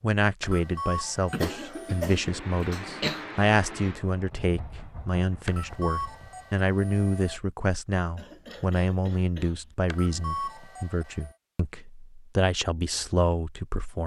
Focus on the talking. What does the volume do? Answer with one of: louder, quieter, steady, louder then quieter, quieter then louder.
steady.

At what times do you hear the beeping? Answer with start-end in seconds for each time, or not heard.
0.4-2.1, 5.5-7.4, 9.8-11.3.